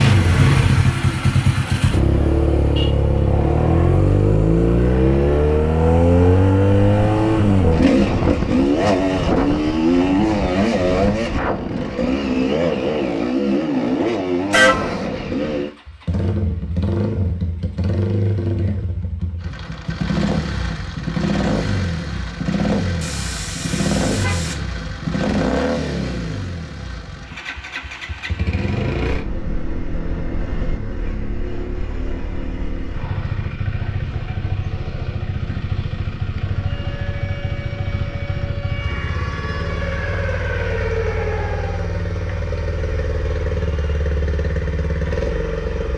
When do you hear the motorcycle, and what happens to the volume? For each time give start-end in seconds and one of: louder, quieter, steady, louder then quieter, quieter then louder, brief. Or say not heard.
0.0-45.9 quieter.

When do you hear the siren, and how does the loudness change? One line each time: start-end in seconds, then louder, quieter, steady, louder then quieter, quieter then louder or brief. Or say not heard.
36.5-41.9 louder.